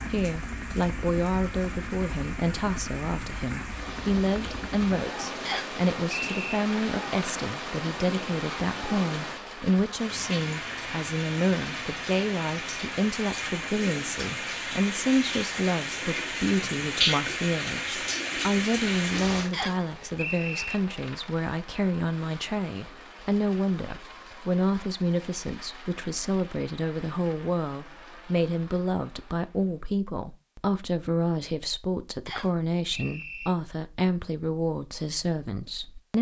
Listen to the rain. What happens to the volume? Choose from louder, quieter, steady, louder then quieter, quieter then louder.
louder.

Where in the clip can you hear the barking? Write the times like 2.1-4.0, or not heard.
not heard.